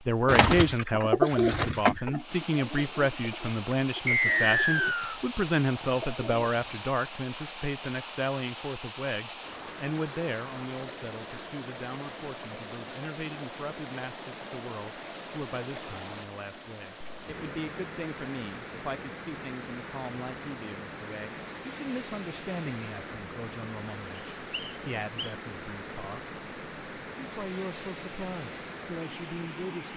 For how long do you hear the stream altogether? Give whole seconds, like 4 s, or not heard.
30 s.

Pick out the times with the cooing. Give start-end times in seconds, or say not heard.
0.2-6.8.